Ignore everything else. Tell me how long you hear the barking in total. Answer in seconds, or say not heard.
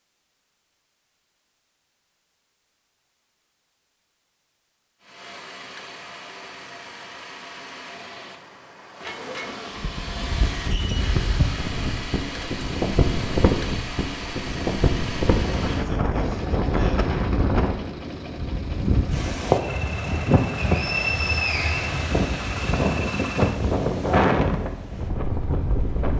not heard.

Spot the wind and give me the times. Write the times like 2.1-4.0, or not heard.
9.8-26.1.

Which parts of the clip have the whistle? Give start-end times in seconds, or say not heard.
20.6-21.9.